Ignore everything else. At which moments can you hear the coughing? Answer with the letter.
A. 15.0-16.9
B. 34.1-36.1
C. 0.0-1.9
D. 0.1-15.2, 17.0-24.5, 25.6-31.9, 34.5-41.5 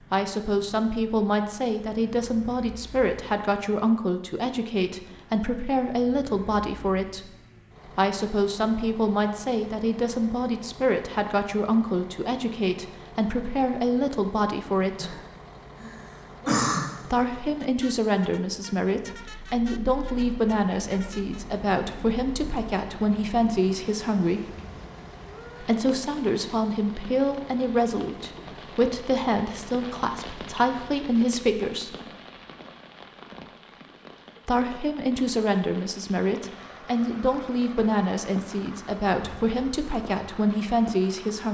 A.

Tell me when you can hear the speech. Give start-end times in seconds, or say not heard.
0.1-15.2, 17.0-24.5, 25.6-31.9, 34.5-41.5.